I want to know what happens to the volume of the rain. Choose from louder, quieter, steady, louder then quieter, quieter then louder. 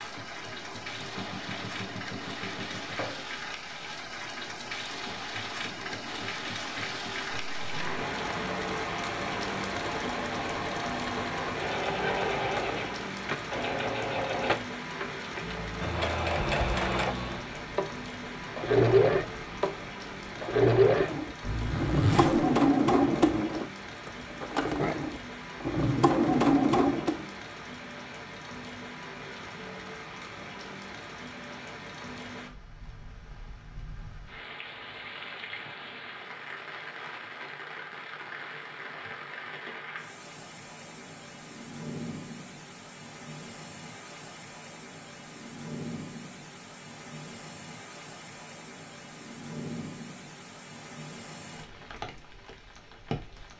quieter.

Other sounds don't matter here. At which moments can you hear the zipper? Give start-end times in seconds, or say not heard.
21.4-22.4.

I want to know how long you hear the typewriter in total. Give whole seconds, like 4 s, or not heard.
not heard.